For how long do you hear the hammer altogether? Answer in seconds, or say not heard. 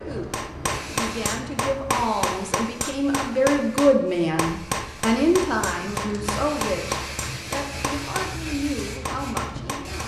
10 s.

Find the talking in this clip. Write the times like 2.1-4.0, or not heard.
0.0-10.0.